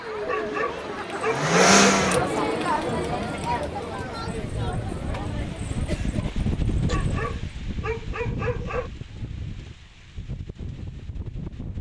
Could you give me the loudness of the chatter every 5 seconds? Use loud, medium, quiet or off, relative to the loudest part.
loud, medium, off.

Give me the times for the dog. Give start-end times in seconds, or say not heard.
0.2-2.3, 6.8-8.9.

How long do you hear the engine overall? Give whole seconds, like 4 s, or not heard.
2 s.